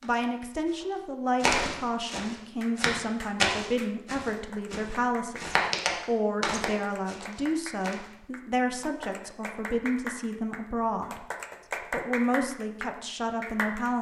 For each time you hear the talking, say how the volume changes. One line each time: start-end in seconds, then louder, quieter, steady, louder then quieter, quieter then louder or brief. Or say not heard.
0.0-11.2 steady
11.9-13.9 brief.